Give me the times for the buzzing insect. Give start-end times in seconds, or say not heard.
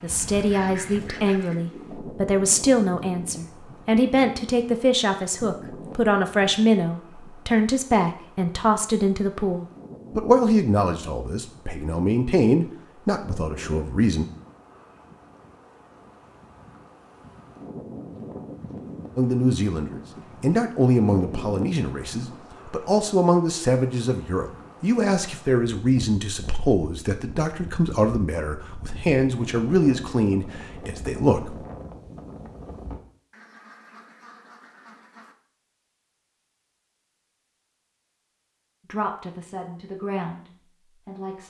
not heard.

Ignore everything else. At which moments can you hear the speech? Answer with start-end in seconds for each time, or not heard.
0.0-14.2, 19.1-31.6, 38.9-41.4.